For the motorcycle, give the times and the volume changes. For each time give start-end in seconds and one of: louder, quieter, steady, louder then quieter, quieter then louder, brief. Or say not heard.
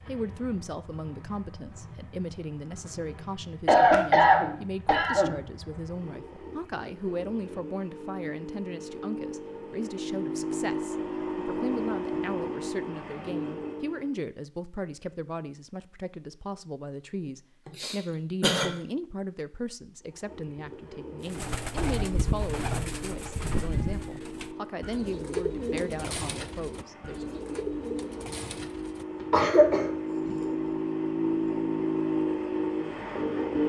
0.0-14.2 louder
20.0-33.6 louder.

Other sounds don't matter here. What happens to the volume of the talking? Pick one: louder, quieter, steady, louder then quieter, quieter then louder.
steady.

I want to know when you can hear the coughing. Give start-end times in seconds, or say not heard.
3.6-5.3, 17.6-18.7, 29.3-29.9.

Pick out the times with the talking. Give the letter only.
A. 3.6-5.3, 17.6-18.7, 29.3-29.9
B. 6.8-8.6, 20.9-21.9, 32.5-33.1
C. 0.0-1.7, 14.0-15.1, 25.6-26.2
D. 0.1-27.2
D.